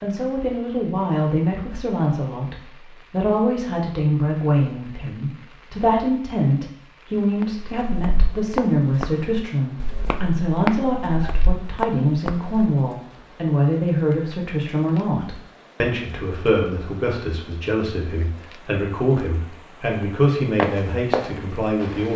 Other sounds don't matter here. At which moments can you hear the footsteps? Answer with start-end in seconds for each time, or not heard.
7.4-12.7, 20.0-22.1.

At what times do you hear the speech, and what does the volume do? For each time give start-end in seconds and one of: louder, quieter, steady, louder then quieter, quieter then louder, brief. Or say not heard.
0.0-22.1 steady.